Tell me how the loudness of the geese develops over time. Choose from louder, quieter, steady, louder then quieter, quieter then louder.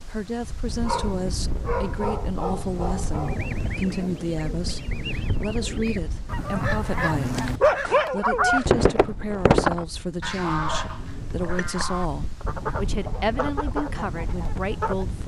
louder then quieter.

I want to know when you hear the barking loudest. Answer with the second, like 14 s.
8 s.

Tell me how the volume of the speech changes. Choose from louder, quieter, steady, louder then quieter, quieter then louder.
steady.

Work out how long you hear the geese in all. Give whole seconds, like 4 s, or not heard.
12 s.